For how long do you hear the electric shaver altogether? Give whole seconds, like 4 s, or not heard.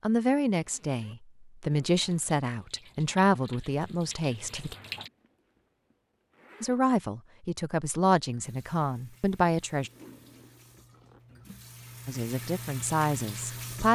not heard.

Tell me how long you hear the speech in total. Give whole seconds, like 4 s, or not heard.
10 s.